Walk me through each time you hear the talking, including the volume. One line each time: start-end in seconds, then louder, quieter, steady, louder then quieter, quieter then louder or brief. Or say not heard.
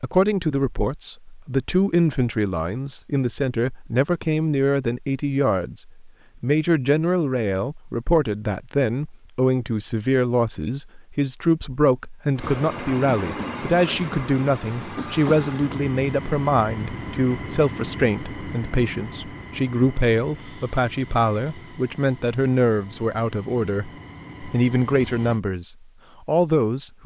0.0-27.0 steady.